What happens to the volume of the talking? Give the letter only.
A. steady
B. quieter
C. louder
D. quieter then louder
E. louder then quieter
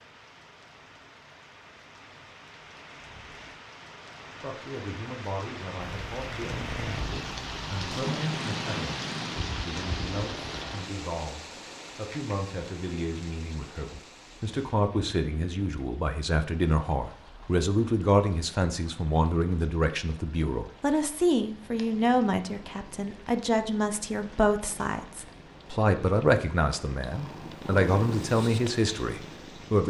C.